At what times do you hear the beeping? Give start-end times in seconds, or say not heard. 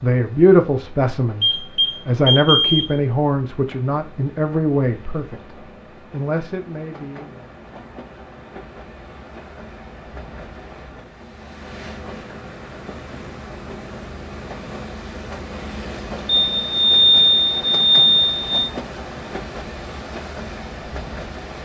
1.4-2.9, 16.4-18.7.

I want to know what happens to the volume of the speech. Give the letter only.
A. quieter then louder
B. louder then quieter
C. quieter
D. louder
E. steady
C.